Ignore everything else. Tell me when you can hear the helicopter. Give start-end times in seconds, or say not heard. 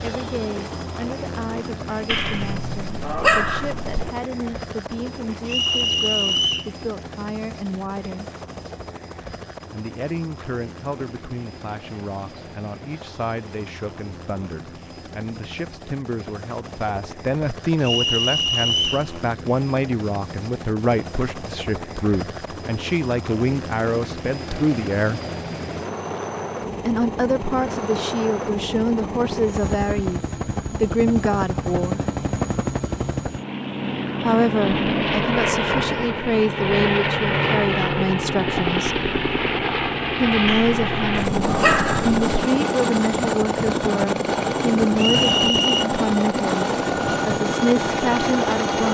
0.0-48.9.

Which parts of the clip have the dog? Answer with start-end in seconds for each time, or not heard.
2.0-4.1, 40.5-42.2.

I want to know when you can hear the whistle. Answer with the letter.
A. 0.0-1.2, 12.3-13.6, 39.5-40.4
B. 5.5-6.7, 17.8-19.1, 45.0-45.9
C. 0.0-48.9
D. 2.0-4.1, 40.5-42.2
B.